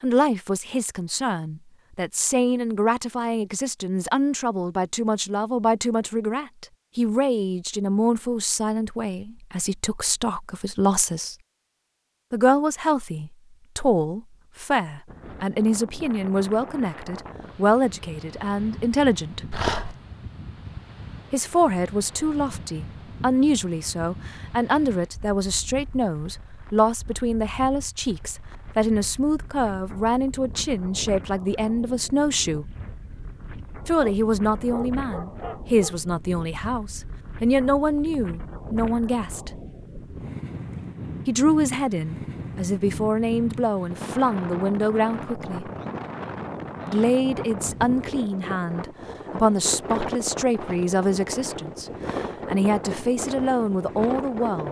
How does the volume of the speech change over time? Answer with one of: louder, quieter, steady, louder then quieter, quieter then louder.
steady.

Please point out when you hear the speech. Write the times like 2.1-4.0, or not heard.
0.0-11.3, 12.3-19.4, 21.3-32.6, 33.9-39.5, 41.2-45.7, 46.9-54.6.